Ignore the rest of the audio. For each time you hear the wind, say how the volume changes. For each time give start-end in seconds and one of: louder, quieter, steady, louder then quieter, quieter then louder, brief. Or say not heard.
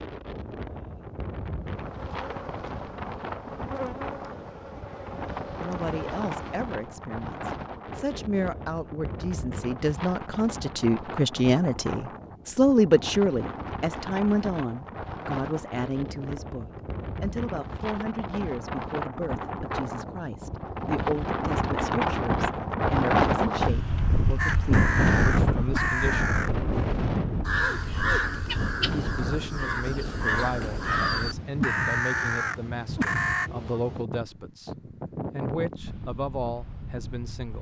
0.0-37.5 louder then quieter.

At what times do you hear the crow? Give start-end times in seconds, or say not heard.
24.4-26.5, 27.4-33.5.